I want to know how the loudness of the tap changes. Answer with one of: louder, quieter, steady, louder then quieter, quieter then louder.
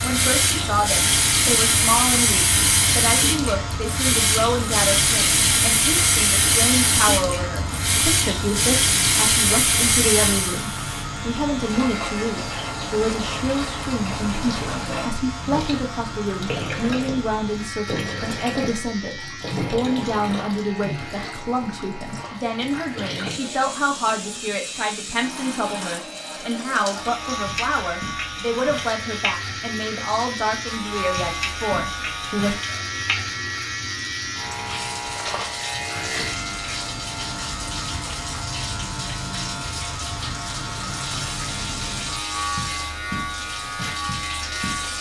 quieter.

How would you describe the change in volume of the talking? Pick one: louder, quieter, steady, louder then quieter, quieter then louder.
steady.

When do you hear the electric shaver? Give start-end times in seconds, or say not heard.
0.0-44.9.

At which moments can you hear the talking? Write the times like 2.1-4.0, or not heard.
0.0-32.5.